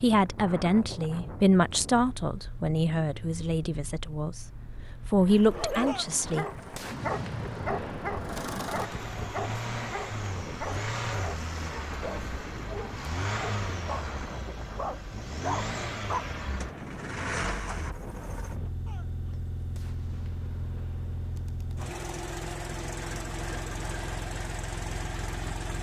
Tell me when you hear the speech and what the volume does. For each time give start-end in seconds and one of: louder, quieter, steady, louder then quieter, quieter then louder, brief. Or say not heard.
0.0-6.5 quieter then louder.